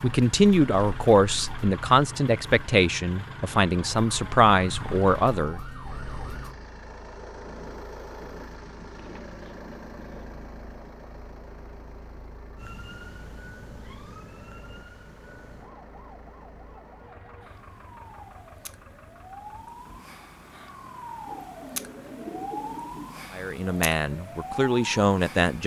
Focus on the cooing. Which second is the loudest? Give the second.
22 s.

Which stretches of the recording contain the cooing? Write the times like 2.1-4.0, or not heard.
8.6-10.3, 21.2-23.1.